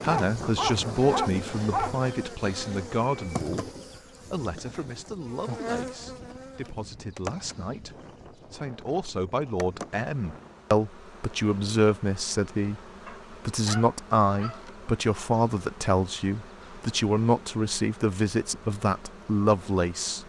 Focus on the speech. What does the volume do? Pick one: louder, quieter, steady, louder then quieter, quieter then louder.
quieter then louder.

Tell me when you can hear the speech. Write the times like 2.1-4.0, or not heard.
0.0-20.2.